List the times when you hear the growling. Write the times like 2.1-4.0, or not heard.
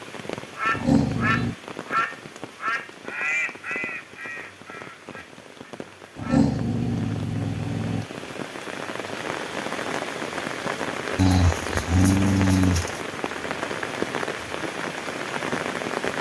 0.7-1.6, 6.2-8.1, 11.2-13.0.